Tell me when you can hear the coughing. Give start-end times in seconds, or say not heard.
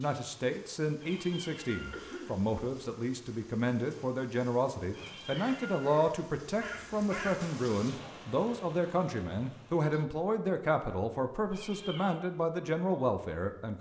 1.9-2.5.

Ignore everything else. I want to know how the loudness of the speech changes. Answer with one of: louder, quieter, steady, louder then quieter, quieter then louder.
steady.